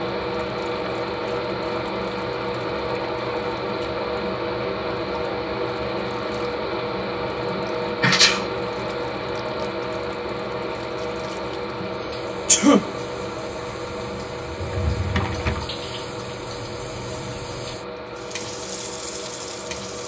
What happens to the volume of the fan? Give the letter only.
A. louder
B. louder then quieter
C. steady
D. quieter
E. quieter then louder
D.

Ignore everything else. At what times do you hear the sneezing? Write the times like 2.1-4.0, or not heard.
8.0-8.4, 12.4-12.9.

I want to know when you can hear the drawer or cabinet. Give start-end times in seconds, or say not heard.
14.6-15.8.